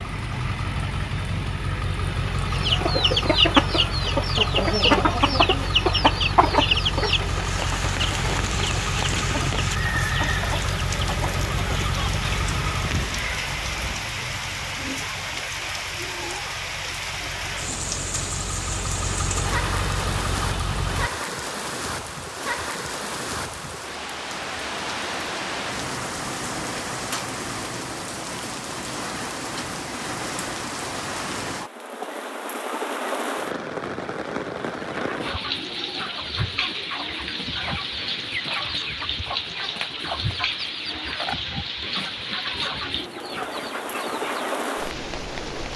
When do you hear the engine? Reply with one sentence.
You can hear the engine from 0.0 to 21.1 s.